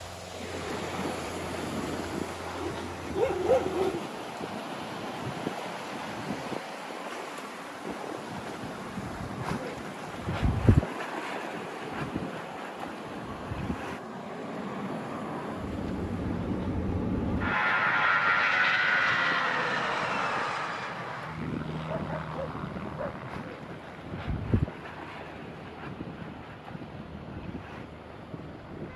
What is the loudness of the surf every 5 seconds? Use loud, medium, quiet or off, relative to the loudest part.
loud, loud, loud, medium, medium, medium.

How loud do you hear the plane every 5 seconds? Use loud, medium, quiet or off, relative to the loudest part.
quiet, quiet, quiet, loud, medium, quiet.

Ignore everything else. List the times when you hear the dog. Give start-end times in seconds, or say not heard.
2.6-4.0, 21.9-23.2.